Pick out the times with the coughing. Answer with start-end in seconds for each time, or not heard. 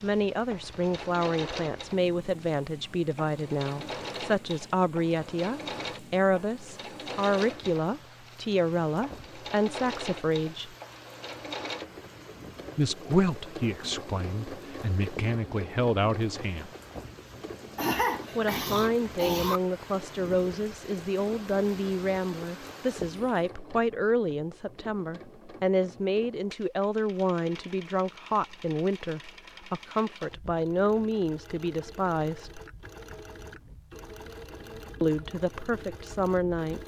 17.8-19.6.